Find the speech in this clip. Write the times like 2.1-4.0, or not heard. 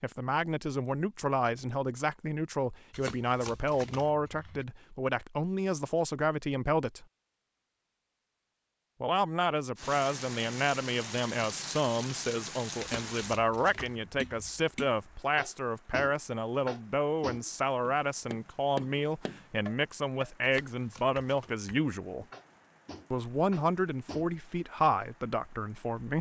0.0-7.0, 9.0-22.2, 23.1-26.1.